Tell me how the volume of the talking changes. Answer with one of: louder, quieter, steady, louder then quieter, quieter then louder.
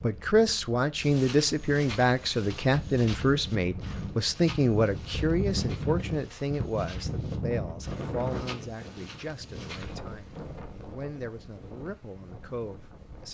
quieter.